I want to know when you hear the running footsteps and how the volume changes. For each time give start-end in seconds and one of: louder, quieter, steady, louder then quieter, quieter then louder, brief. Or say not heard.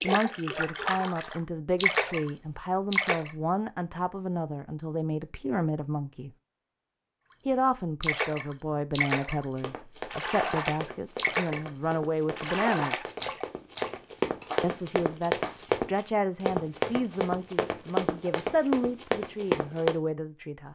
9.6-19.9 louder.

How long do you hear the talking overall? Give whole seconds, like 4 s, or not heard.
18 s.